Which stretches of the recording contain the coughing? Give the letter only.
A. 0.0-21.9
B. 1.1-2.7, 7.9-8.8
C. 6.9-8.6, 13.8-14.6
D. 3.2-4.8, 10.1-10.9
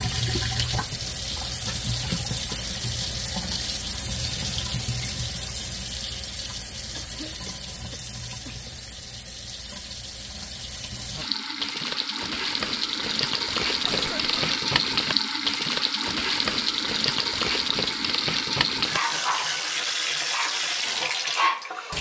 C.